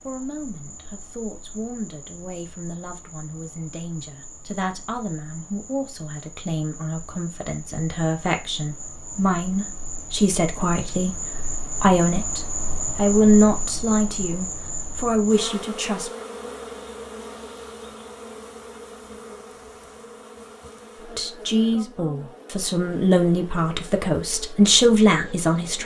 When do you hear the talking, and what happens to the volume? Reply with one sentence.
The talking can be heard from 0.1 to 16.1 s, getting louder; and from 21.1 to 25.8 s, getting louder.